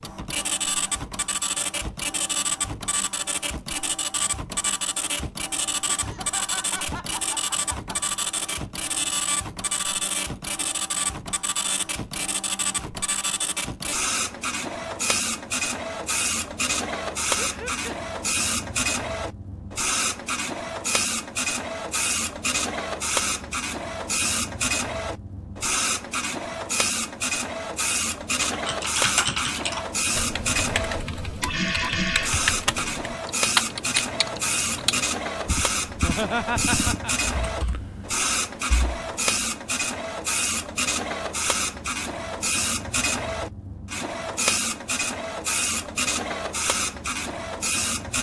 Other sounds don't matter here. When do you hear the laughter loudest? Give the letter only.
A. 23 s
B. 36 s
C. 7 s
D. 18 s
B.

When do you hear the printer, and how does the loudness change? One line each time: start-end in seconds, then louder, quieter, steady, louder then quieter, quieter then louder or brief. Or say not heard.
0.0-48.1 steady.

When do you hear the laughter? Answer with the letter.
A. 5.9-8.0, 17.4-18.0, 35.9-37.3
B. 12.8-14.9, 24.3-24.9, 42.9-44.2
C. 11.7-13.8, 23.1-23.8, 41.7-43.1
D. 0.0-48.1
A.